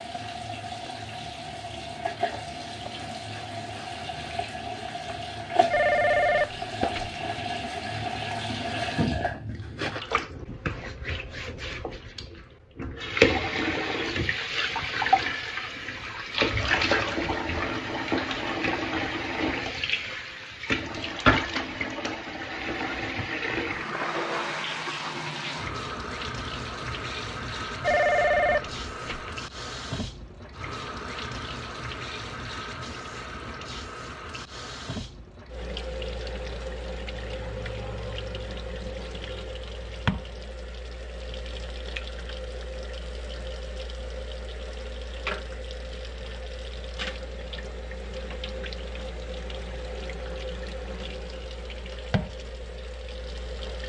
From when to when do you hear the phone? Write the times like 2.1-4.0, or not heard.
5.7-7.2, 27.8-29.4.